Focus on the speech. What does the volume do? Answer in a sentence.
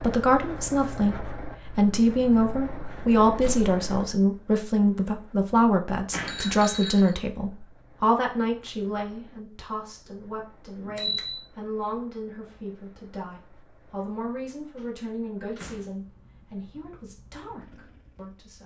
The loudness of the speech goes down.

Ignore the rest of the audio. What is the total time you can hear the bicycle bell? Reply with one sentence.
The bicycle bell can be heard for 2 seconds in total.